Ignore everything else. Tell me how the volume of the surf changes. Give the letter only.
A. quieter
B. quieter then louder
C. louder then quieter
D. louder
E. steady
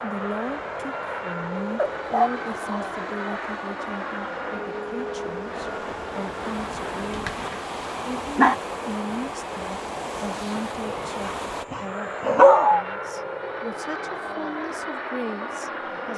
D.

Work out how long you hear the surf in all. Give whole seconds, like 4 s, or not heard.
12 s.